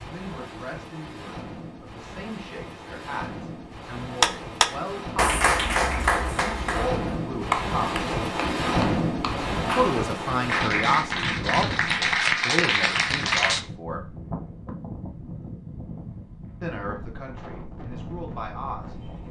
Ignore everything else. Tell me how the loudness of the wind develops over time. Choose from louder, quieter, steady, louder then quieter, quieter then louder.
louder then quieter.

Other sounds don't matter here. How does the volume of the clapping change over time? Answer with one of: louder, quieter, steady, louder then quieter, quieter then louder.
quieter then louder.